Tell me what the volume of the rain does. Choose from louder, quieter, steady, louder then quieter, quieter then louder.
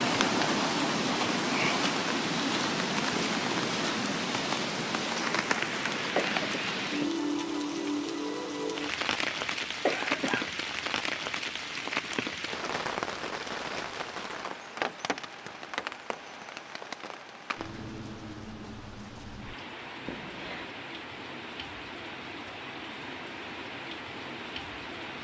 quieter.